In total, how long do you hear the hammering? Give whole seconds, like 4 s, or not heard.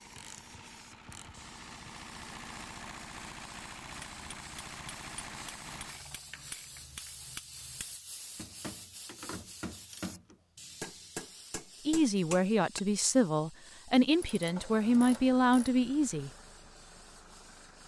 9 s.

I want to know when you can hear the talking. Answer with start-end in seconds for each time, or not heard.
11.8-16.3.